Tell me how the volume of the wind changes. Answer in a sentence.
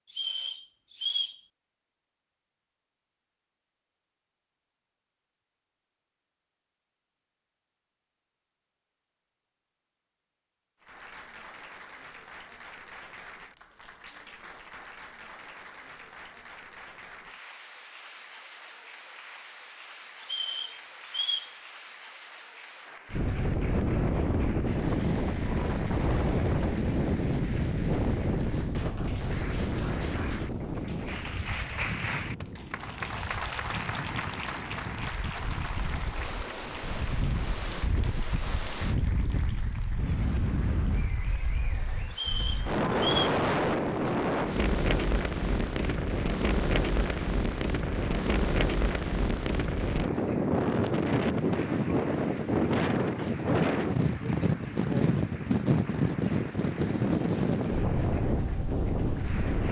The loudness of the wind goes down, then up.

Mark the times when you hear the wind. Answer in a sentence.
The wind can be heard from 23.1 to 59.6 s.